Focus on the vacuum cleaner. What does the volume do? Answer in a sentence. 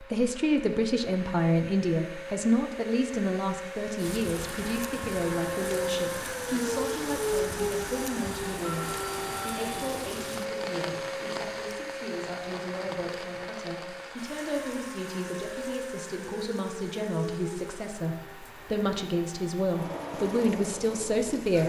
The volume of the vacuum cleaner goes up, then down.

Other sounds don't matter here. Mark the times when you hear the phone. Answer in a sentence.
You can hear the phone from 8.6 to 9.6 s.